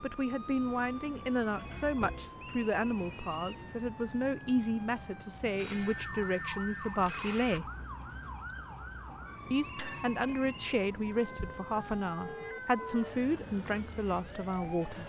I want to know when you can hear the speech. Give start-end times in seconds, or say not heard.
0.0-7.7, 9.5-15.0.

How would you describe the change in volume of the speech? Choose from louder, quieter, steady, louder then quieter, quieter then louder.
steady.